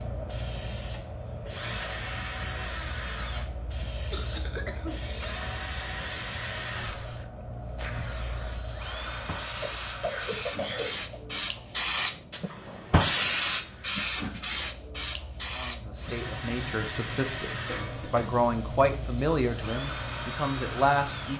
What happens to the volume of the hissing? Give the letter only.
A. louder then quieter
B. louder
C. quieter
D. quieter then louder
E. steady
A.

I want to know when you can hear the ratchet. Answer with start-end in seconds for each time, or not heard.
not heard.